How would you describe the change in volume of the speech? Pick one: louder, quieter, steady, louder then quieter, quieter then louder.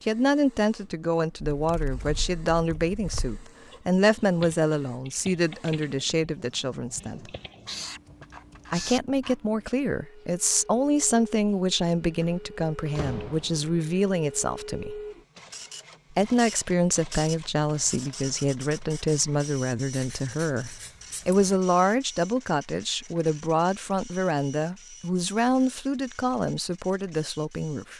steady.